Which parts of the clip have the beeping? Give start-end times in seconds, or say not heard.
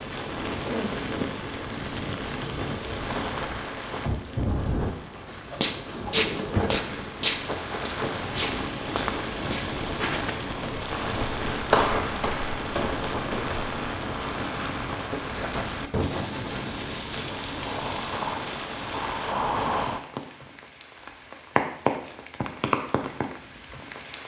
not heard.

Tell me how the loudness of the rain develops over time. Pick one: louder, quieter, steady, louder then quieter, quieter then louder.
steady.